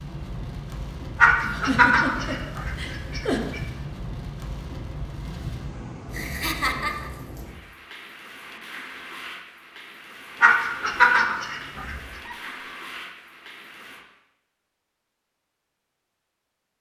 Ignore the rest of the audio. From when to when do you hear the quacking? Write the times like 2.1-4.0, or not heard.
1.1-3.6, 10.4-11.9.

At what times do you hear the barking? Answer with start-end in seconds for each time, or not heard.
not heard.